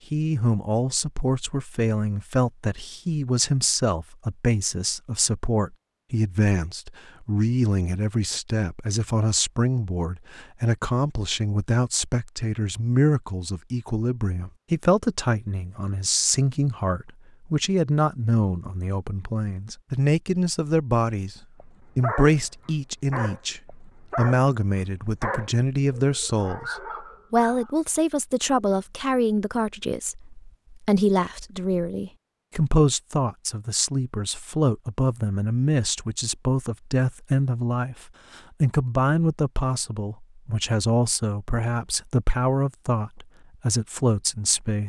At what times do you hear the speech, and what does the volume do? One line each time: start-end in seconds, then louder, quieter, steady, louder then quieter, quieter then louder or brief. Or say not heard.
0.1-44.8 steady.